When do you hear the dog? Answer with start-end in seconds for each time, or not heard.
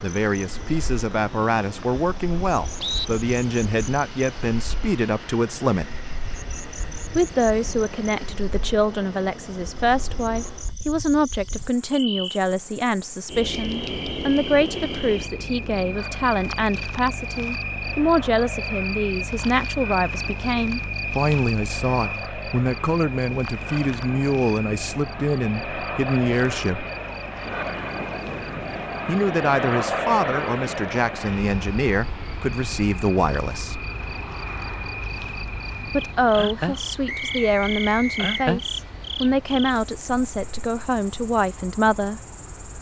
not heard.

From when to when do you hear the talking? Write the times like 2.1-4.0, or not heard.
0.0-6.0, 7.2-26.9, 29.1-33.9, 35.9-42.2.